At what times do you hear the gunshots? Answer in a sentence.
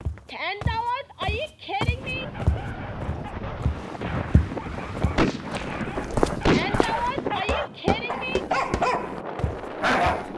The gunshots can be heard from 4.0 to 7.1 s.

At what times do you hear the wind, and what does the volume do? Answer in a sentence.
The wind can be heard from 1.9 to 10.3 s, at a steady volume.